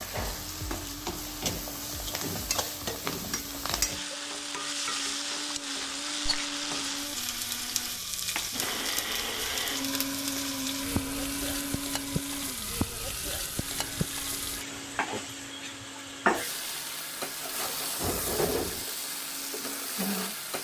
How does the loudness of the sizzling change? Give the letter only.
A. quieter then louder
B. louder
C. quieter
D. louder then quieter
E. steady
E.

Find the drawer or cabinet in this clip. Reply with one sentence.
You can hear the drawer or cabinet from 17.9 to 18.9 s.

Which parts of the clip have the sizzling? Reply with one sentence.
The sizzling can be heard from 0.0 to 20.5 s.